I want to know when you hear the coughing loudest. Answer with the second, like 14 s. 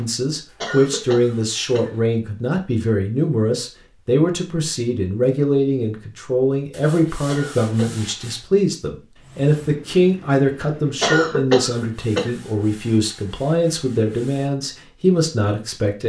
11 s.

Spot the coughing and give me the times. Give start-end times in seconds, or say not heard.
0.6-1.9, 7.2-8.2, 11.0-12.3.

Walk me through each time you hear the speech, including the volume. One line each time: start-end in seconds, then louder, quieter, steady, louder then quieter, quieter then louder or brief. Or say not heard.
0.0-16.0 steady.